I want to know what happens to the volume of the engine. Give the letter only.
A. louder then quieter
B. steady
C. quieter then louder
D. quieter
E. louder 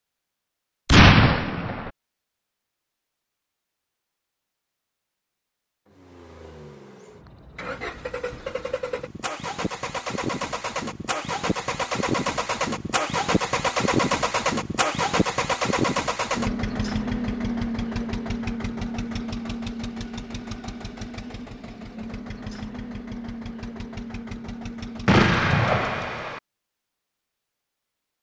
A.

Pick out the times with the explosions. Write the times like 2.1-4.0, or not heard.
0.8-1.9, 25.1-26.4.